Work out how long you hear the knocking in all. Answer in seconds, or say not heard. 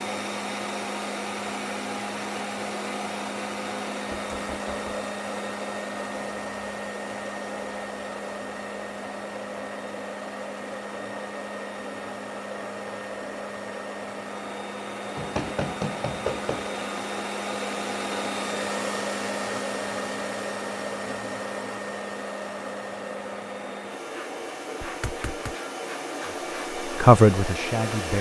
3 s.